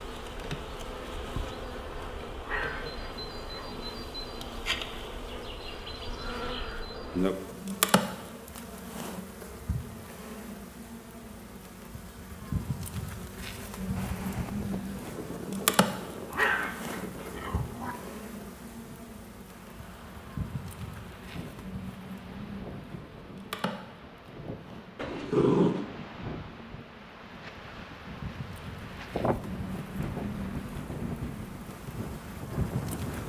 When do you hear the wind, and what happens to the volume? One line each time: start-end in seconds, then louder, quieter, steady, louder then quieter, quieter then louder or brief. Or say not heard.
13.9-33.2 quieter then louder.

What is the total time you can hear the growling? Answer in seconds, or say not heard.
4 s.